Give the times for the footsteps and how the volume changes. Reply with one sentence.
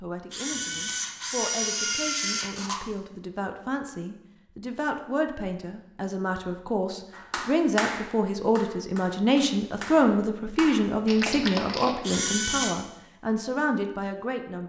The footsteps can't be heard in this clip.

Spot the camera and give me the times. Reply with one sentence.
The camera can be heard from 0.3 to 2.8 s and from 12.0 to 12.8 s.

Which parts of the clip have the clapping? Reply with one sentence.
You can hear the clapping from 7.1 to 11.9 s.